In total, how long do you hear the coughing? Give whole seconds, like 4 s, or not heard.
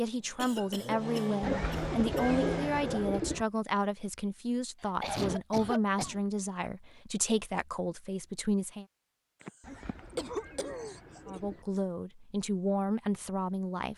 5 s.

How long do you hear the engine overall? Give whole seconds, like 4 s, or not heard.
3 s.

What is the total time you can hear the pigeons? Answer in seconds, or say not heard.
4 s.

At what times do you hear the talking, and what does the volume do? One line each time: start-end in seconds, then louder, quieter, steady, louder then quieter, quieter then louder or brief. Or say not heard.
0.0-8.8 steady
11.2-13.9 brief.